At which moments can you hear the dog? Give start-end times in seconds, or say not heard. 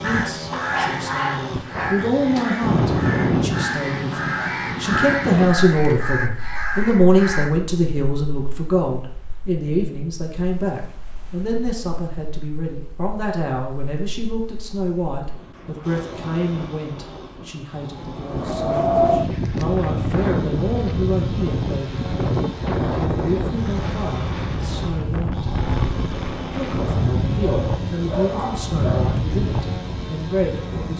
0.5-2.5, 26.8-29.1.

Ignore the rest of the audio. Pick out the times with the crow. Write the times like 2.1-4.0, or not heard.
0.0-7.5.